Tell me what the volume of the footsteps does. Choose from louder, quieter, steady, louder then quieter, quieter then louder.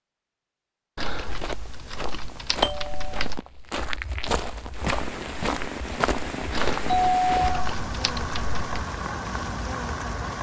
quieter then louder.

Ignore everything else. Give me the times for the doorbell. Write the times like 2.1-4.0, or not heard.
2.5-3.3, 7.0-7.7.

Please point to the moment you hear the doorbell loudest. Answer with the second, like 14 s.
7 s.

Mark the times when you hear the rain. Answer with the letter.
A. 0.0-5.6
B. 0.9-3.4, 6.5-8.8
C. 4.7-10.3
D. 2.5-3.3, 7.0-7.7
C.